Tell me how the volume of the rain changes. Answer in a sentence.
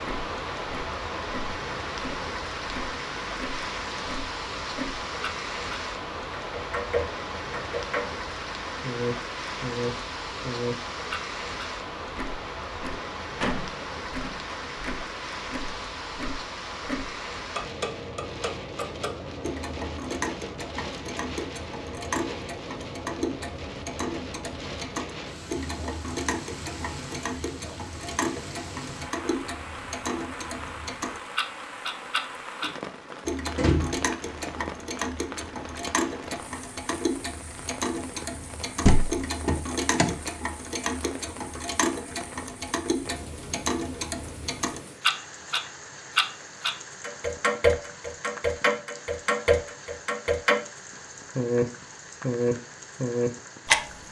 The loudness of the rain goes down.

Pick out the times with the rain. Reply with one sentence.
You can hear the rain from 0.0 to 54.0 s.